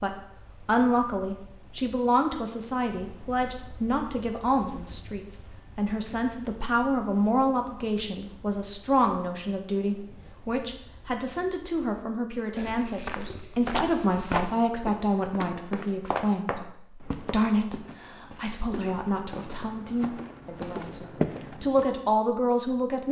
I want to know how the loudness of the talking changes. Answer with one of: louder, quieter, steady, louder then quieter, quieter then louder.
steady.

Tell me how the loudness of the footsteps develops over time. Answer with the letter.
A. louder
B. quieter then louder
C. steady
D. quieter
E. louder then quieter
B.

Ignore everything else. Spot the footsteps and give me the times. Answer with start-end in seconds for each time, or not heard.
12.6-21.9.